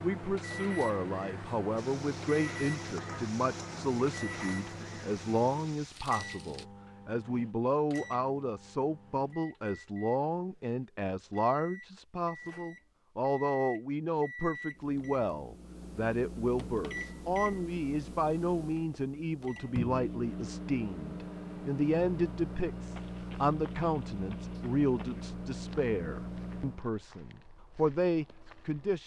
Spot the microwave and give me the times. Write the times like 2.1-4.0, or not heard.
0.0-26.9.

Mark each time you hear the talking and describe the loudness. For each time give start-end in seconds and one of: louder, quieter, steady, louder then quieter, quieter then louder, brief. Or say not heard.
0.0-29.0 steady.